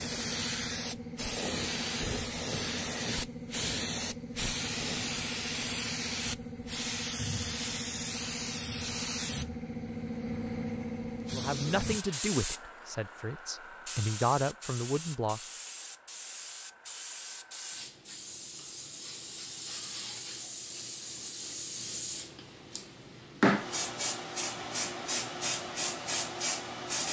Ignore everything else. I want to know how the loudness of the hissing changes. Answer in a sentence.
The volume of the hissing goes down, then up.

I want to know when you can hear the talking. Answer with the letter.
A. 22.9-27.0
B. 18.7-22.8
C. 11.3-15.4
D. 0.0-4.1
C.